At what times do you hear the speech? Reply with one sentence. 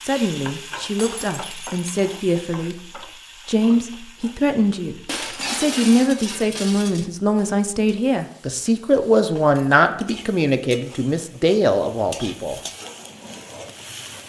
The speech can be heard from 0.0 to 12.6 s.